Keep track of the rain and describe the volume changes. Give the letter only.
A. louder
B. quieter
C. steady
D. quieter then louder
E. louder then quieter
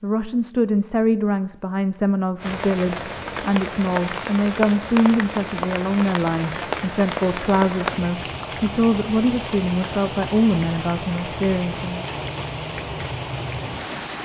C.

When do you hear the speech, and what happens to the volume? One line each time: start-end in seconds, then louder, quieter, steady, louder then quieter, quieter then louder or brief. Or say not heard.
0.0-12.1 steady.